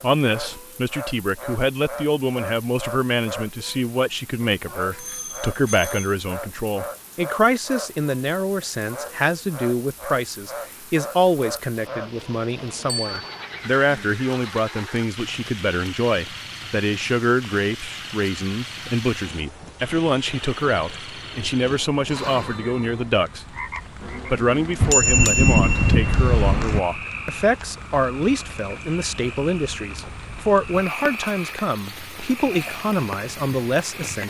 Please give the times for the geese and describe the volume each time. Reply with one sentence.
The geese can't be heard in this clip.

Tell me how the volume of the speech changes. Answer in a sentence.
The loudness of the speech stays about the same.